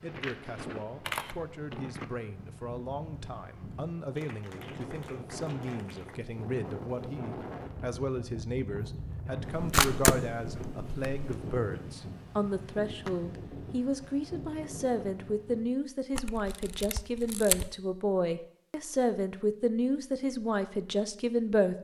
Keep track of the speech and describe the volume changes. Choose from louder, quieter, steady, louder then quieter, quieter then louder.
louder.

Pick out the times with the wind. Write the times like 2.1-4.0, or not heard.
0.0-15.7.